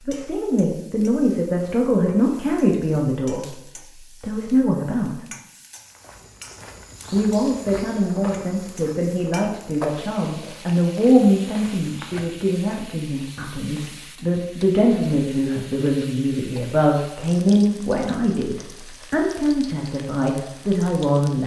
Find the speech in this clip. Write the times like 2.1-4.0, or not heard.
0.1-5.2, 7.1-21.4.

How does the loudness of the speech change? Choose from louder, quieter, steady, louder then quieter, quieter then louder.
steady.